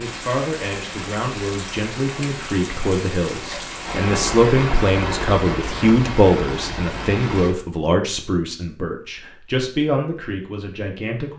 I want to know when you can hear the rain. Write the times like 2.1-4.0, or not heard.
0.0-7.5.